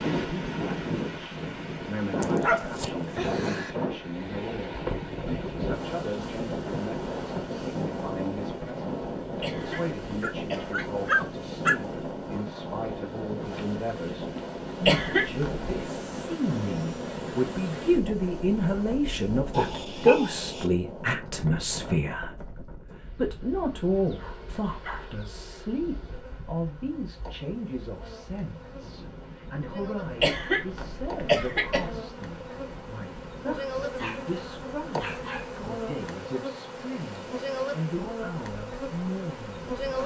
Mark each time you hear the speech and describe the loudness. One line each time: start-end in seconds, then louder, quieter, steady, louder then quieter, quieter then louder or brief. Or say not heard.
0.0-39.8 louder then quieter.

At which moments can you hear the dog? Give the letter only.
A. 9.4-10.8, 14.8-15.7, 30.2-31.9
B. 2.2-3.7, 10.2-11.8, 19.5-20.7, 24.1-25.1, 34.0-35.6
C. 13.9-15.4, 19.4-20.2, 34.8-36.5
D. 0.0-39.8
B.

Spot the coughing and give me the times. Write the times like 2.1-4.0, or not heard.
9.4-10.8, 14.8-15.7, 30.2-31.9.